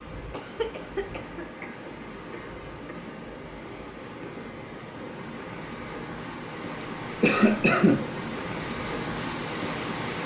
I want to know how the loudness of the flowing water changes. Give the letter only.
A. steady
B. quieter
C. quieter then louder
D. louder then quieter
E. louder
E.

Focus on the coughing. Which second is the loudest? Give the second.
8 s.